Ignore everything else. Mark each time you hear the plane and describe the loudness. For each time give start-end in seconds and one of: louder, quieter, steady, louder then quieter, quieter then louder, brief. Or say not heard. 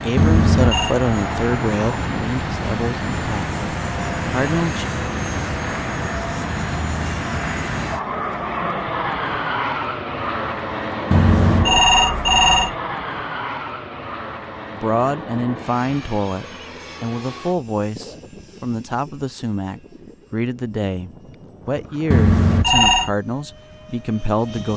0.0-24.7 quieter.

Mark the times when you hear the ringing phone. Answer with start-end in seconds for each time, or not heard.
0.1-0.9, 11.1-12.8, 22.1-23.1.